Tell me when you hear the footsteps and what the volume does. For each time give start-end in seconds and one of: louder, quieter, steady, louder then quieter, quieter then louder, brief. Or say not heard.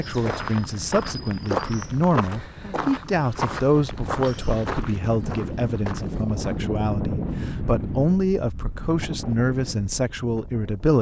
0.0-6.7 quieter.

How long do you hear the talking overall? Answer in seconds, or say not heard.
11 s.